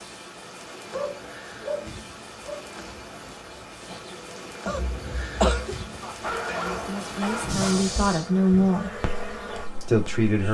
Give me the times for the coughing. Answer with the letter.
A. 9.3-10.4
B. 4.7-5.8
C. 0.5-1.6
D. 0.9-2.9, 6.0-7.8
B.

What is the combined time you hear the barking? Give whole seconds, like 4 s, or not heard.
4 s.